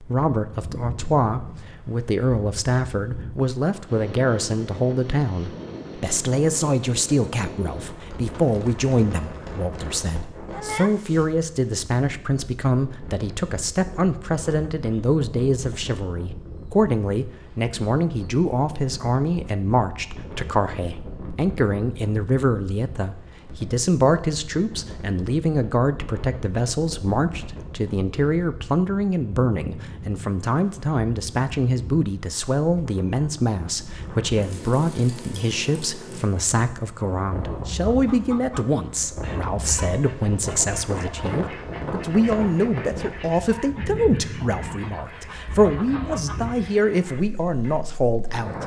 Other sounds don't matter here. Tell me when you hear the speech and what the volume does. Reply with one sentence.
The speech can be heard from 0.0 to 48.6 s, at a steady volume.